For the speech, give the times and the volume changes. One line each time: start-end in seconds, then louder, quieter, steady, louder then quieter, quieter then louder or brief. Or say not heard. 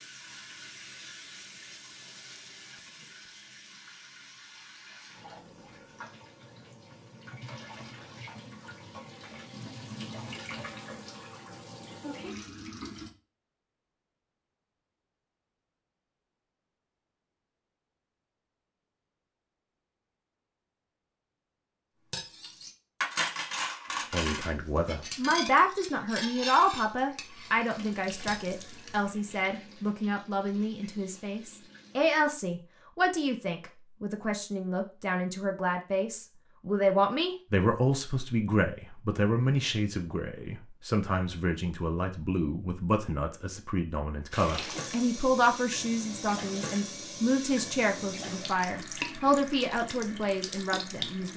24.1-51.3 steady.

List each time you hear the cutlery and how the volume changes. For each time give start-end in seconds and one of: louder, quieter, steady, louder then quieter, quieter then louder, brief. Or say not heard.
22.1-28.6 quieter.